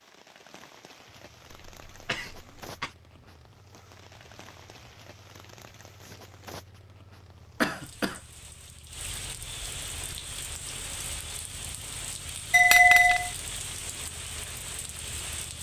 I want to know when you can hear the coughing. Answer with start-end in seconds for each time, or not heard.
1.5-2.9, 7.6-8.2, 12.5-13.3.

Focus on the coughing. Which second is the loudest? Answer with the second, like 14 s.
13 s.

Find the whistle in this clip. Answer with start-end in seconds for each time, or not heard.
not heard.